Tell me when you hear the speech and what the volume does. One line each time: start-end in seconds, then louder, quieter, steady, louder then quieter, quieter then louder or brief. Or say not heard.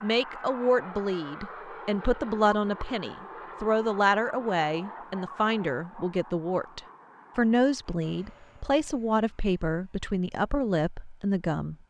0.0-11.8 steady.